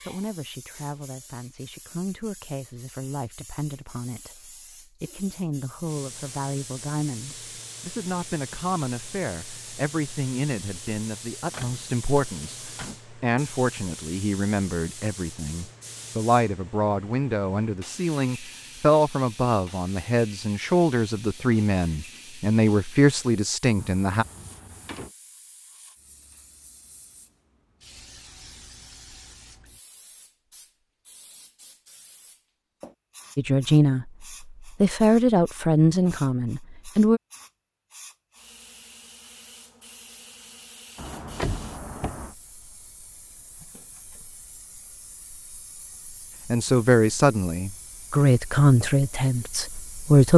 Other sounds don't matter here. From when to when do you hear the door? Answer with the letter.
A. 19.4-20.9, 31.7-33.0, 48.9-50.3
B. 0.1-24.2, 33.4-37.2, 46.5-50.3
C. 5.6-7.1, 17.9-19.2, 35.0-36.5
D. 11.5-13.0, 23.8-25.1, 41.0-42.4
D.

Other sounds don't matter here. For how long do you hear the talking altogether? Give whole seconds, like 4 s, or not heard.
32 s.